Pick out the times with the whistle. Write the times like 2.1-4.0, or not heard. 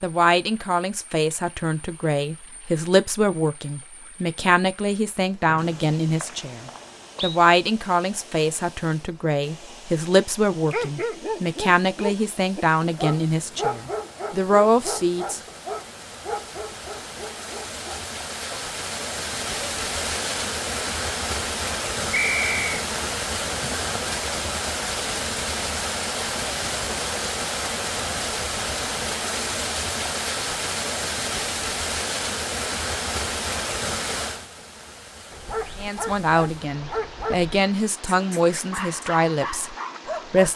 5.5-7.4, 22.1-22.7.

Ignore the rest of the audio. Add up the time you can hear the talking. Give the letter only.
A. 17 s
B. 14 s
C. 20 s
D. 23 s
C.